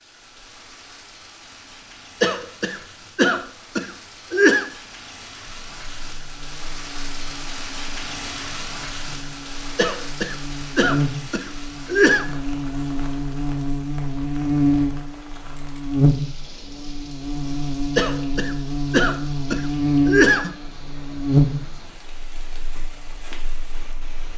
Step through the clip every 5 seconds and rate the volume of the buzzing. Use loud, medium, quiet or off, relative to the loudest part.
off, quiet, loud, loud, loud.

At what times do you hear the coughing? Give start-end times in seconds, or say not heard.
2.2-4.7, 9.8-12.3, 17.9-20.6.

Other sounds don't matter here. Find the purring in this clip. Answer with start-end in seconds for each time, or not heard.
not heard.